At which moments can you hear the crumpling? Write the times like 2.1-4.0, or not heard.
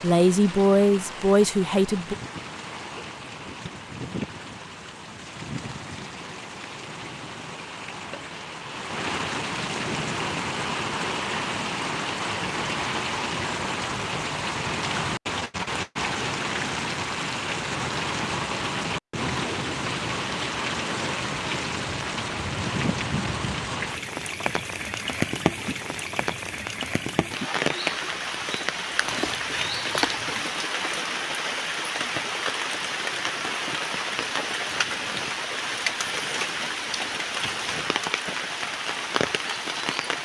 29.0-30.4.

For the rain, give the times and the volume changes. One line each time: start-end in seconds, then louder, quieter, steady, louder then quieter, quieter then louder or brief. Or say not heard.
0.0-40.2 louder.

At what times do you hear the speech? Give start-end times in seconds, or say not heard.
0.0-2.1.